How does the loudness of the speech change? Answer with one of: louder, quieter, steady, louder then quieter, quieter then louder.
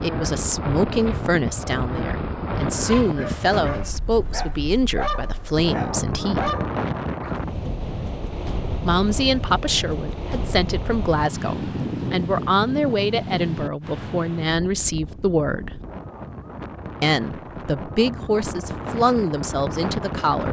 steady.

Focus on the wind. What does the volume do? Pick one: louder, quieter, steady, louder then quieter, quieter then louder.
steady.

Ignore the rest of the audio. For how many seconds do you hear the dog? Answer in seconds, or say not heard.
5 s.